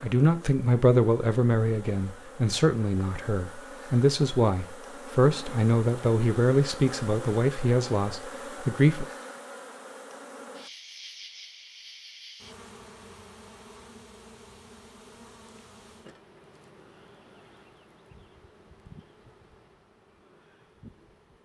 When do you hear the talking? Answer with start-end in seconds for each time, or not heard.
0.0-9.1.